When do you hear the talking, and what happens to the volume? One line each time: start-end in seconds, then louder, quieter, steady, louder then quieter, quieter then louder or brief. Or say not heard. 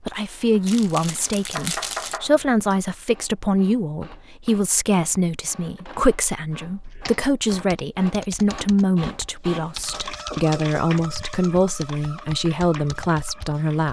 0.0-13.8 steady.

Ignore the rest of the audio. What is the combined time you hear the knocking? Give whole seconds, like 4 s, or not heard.
2 s.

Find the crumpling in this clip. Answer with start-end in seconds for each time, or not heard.
0.7-2.2.